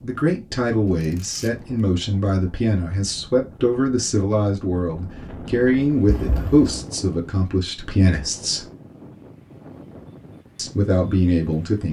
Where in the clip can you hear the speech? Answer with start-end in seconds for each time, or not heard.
0.0-8.7, 10.6-11.8.